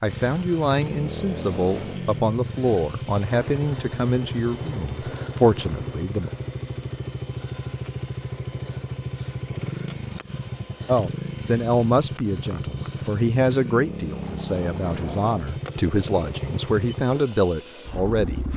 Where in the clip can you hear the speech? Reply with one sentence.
The speech can be heard from 0.0 to 6.3 s and from 10.8 to 18.5 s.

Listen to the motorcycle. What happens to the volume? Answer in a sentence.
The loudness of the motorcycle stays about the same.